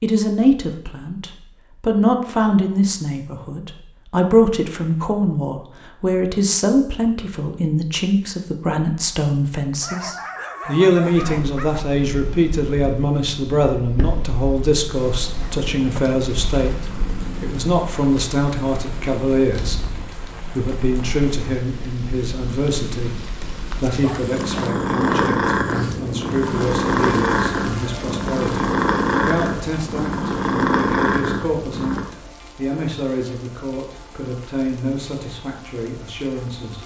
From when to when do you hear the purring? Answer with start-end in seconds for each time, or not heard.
11.2-32.0.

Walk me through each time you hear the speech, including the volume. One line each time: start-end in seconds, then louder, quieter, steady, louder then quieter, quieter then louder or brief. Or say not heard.
0.0-19.8 steady
20.6-23.1 brief
23.8-36.8 steady.